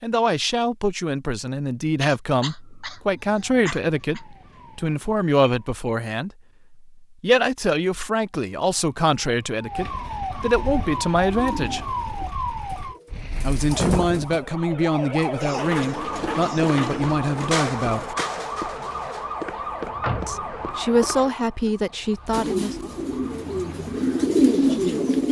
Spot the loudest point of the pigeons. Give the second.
25 s.